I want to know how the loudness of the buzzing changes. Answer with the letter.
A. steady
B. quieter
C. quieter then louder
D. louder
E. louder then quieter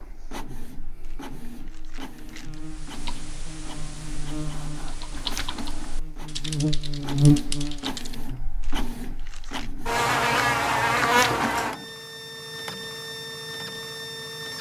D.